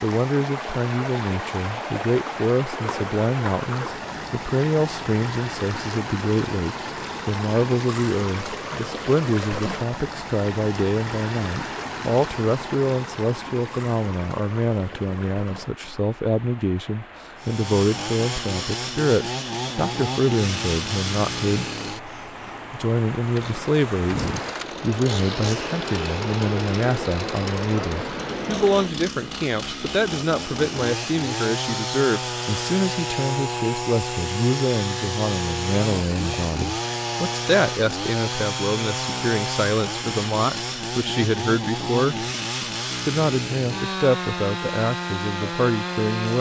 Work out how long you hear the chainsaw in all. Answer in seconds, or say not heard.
29 s.